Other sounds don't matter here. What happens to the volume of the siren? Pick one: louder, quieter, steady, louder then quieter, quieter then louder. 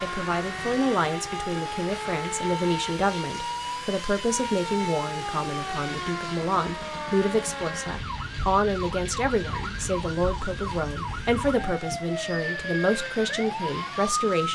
steady.